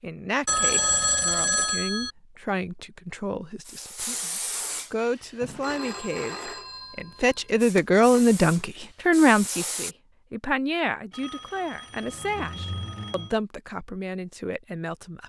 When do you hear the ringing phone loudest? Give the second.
1 s.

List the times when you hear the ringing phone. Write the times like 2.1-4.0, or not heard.
0.5-2.1, 5.6-8.2, 11.1-13.3.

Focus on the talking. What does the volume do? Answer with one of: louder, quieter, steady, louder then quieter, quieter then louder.
louder then quieter.